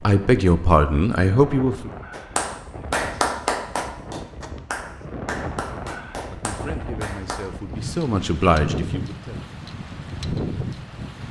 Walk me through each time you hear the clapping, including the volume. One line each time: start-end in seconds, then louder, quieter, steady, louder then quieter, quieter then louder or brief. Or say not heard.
2.1-7.5 quieter.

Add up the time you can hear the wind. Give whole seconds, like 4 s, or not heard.
11 s.